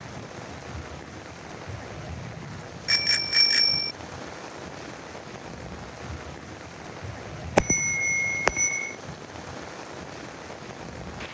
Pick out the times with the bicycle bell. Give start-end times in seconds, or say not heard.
2.9-4.0, 7.5-8.9.